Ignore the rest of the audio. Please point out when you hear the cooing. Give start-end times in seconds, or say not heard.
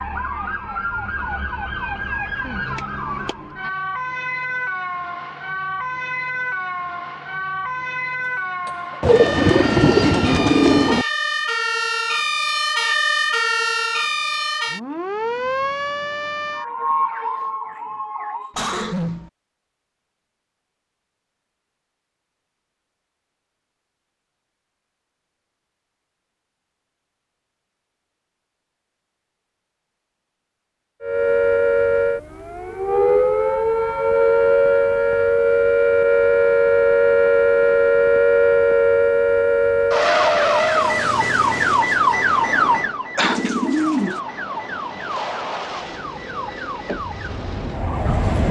9.0-11.1, 43.2-44.2.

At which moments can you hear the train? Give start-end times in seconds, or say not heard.
45.6-48.4.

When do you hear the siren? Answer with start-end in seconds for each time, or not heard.
0.0-18.6, 31.0-48.4.